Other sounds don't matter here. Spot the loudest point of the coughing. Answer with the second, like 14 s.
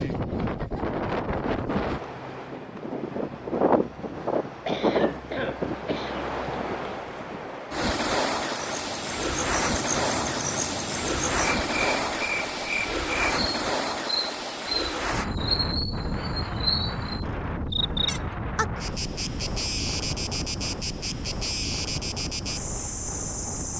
5 s.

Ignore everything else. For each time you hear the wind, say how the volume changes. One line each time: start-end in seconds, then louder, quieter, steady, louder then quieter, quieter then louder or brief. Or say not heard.
0.0-23.7 quieter.